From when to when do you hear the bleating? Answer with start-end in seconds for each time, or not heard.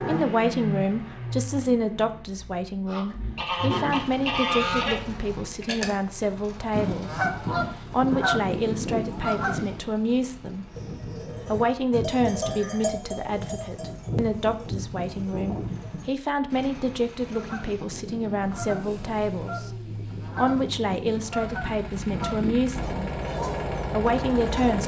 10.7-16.1.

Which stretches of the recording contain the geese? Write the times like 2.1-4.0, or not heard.
2.9-9.8, 17.2-24.8.